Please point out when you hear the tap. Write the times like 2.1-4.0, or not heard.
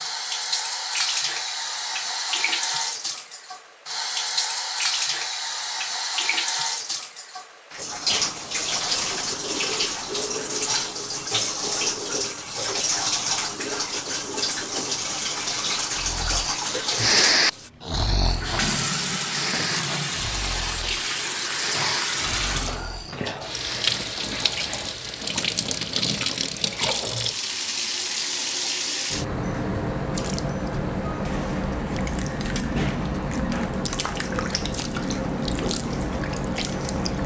0.0-37.2.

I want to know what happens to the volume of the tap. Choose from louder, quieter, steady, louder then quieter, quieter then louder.
steady.